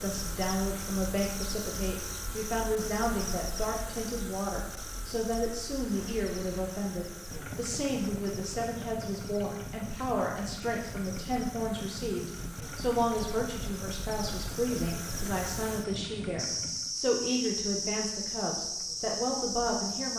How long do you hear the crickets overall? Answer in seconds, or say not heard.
20 s.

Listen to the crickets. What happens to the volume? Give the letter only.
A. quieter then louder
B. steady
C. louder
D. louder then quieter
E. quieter
A.